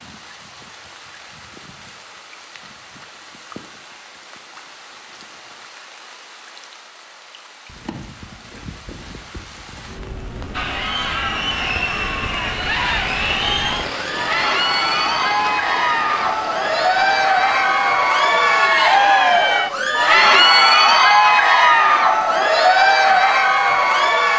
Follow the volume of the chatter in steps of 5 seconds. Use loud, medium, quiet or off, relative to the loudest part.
off, off, medium, loud, loud.